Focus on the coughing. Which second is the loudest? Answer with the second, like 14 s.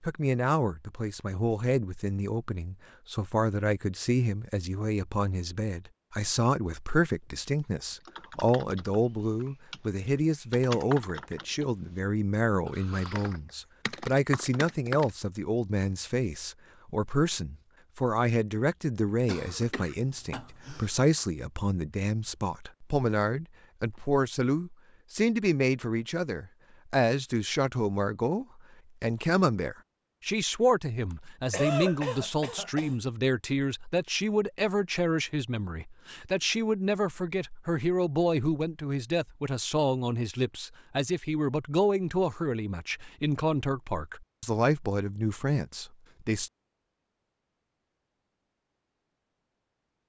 32 s.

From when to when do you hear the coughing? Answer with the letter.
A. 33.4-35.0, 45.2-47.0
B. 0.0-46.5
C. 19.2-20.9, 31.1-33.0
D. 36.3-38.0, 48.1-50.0
C.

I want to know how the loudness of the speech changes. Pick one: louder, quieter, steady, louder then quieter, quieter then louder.
steady.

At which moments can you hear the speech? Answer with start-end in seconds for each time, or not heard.
0.0-46.5.